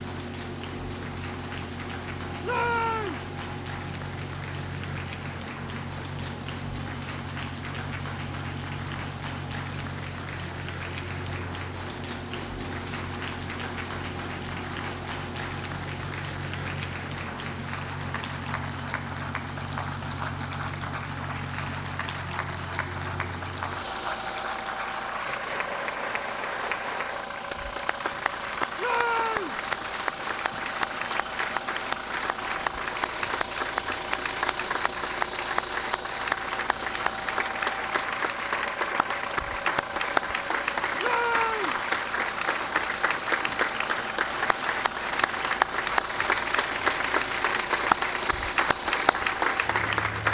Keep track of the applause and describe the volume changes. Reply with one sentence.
The loudness of the applause goes up.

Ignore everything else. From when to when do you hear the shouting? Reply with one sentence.
The shouting can be heard from 2.4 to 3.2 s, from 28.8 to 29.6 s and from 41.0 to 41.8 s.